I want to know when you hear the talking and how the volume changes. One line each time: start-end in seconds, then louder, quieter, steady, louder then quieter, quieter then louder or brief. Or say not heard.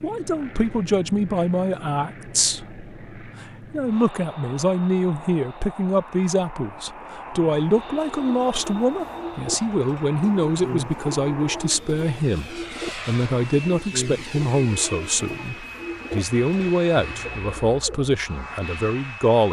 0.0-19.4 steady.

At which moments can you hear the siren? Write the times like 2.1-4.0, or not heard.
not heard.